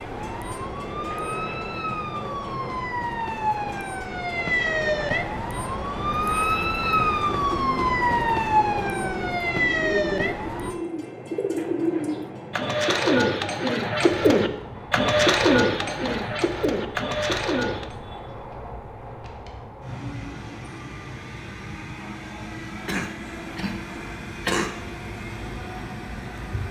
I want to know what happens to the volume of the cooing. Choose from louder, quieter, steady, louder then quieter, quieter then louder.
louder.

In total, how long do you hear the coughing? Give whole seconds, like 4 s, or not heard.
2 s.